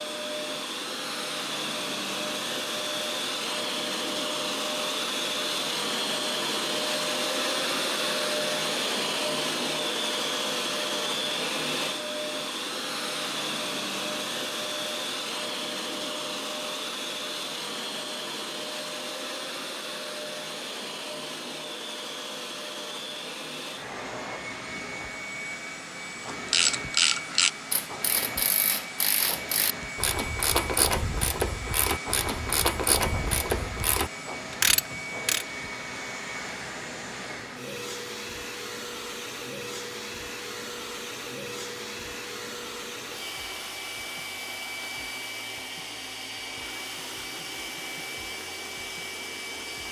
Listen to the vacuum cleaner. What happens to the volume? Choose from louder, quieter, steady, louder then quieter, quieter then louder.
quieter.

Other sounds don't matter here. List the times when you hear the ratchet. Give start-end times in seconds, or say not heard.
26.4-35.5.